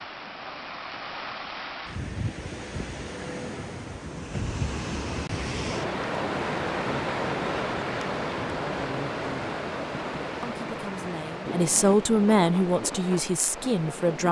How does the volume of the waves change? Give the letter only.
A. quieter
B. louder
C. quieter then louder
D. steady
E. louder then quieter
E.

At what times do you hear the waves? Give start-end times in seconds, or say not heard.
0.0-14.2.